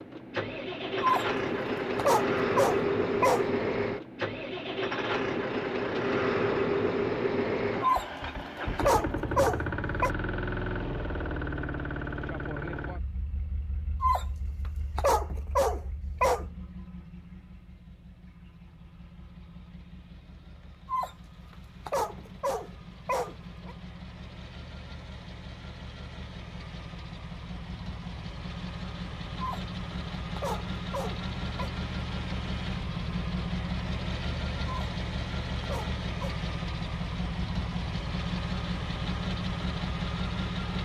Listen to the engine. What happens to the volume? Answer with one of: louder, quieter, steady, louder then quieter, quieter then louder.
quieter then louder.